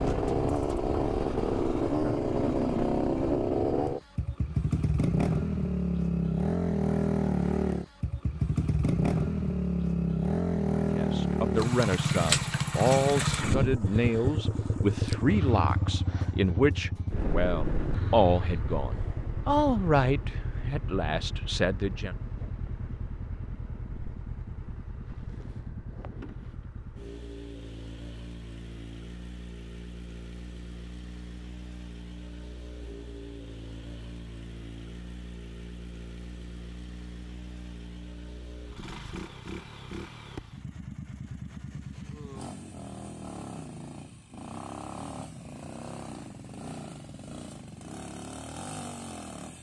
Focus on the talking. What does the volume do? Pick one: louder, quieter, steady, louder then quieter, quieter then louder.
steady.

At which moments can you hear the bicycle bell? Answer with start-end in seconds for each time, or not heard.
not heard.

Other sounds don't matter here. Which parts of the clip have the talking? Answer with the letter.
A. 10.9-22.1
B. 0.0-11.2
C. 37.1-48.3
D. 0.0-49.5
A.